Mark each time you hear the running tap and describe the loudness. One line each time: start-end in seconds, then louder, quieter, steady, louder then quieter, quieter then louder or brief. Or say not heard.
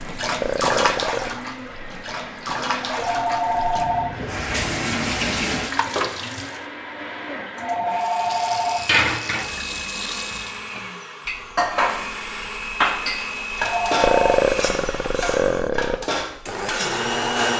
0.0-6.6 quieter then louder
8.0-10.7 brief.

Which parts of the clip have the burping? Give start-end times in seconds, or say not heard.
0.4-1.4, 14.0-16.0.